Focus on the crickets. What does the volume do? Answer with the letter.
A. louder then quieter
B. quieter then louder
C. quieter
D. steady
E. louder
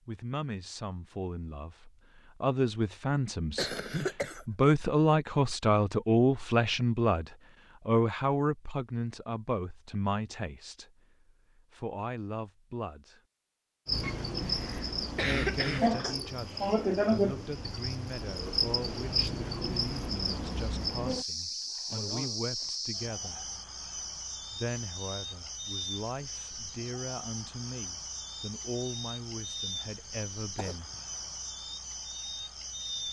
C.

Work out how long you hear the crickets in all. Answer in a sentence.
The crickets can be heard for 19 seconds in total.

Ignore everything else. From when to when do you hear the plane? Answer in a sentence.
You can't hear the plane here.